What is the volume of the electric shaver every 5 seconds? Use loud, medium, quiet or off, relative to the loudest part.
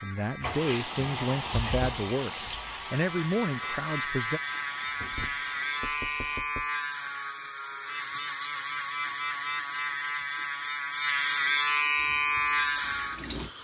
medium, medium, loud.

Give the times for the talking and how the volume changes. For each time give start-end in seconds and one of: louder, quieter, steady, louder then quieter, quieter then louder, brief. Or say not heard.
0.0-4.4 steady.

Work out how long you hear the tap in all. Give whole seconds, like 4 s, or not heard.
8 s.